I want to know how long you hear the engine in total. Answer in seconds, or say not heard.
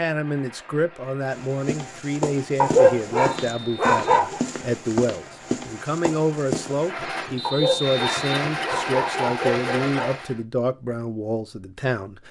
10 s.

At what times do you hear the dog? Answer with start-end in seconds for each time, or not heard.
2.6-4.4, 7.4-10.2.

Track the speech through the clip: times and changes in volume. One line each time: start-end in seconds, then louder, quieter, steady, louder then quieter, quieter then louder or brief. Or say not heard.
0.0-12.2 steady.